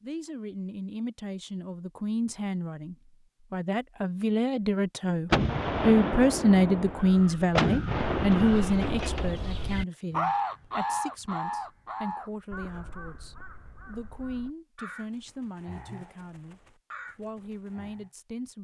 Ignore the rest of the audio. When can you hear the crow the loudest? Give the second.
10 s.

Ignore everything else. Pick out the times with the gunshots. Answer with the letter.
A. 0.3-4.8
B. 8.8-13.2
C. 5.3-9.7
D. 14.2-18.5
C.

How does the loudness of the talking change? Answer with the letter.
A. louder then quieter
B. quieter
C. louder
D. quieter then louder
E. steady
A.